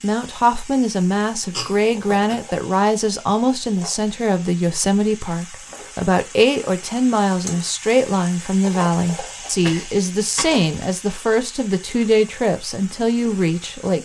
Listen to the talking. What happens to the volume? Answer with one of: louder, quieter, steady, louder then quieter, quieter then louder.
steady.